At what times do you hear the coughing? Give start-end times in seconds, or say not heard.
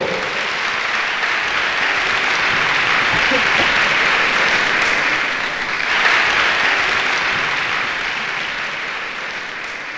3.1-3.9.